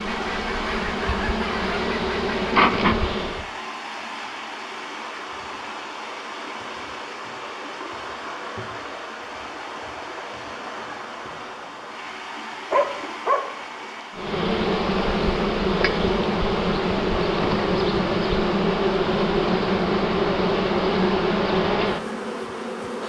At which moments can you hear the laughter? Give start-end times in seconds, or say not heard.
not heard.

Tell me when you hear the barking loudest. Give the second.
13 s.